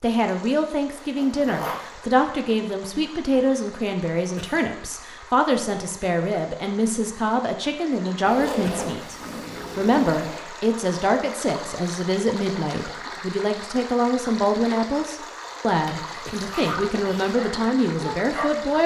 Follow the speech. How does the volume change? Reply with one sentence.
The loudness of the speech stays about the same.